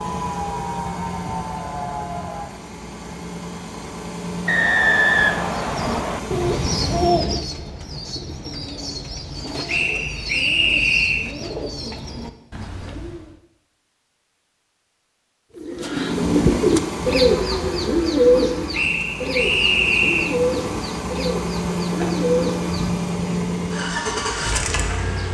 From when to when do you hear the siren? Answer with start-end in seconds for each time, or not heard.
0.0-2.5.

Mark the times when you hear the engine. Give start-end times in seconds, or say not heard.
0.0-7.2, 15.9-25.3.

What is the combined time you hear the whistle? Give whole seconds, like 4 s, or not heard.
5 s.